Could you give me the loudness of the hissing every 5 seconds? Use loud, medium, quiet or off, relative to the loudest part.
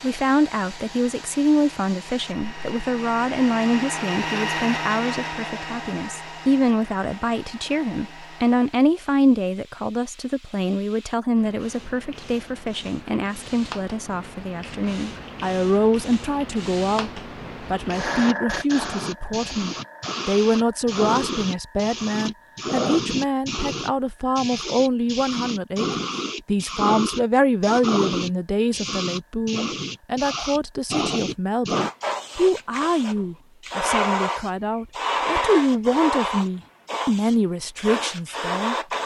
quiet, quiet, quiet, medium, loud, loud, loud, loud.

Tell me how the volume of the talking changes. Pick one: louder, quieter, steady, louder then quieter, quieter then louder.
steady.